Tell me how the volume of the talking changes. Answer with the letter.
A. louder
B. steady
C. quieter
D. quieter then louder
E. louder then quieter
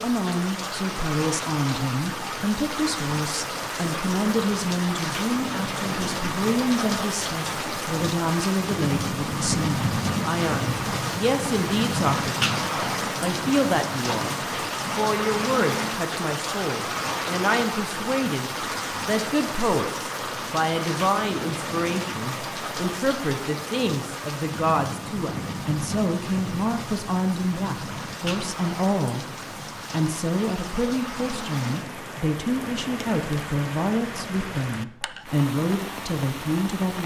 B.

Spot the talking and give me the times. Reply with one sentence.
You can hear the talking from 0.0 to 29.2 s and from 29.9 to 37.0 s.